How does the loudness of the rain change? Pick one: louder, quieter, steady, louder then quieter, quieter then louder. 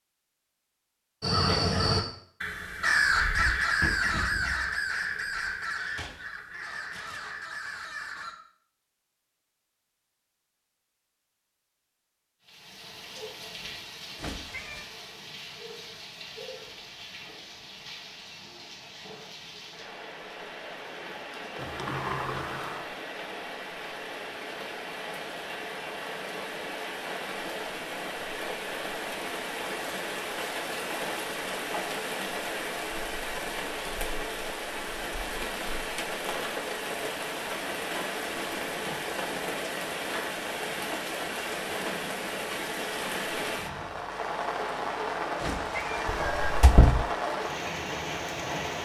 louder.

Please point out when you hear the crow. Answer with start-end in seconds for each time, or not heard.
1.2-8.3.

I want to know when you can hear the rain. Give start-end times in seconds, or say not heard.
12.4-48.8.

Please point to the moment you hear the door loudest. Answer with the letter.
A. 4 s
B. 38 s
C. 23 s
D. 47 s
D.